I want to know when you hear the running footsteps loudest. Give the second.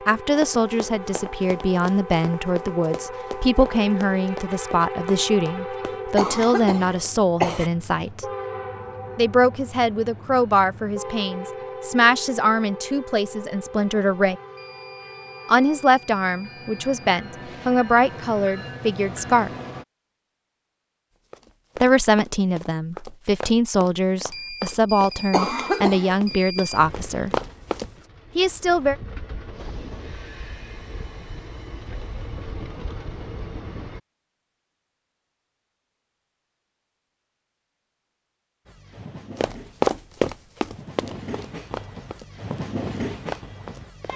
40 s.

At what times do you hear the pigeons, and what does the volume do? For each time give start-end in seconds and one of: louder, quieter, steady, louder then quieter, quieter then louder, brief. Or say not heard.
not heard.